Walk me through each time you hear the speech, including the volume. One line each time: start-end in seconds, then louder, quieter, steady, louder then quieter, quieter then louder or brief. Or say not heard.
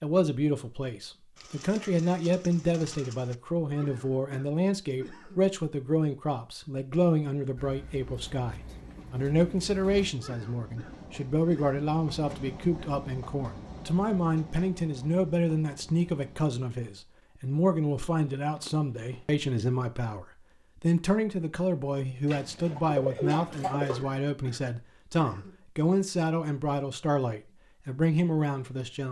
0.0-29.0 steady.